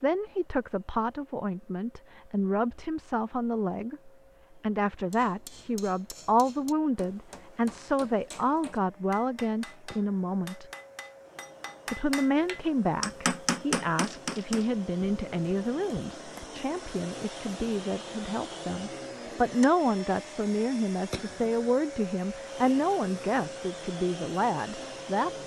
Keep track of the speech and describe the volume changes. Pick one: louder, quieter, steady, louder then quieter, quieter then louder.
steady.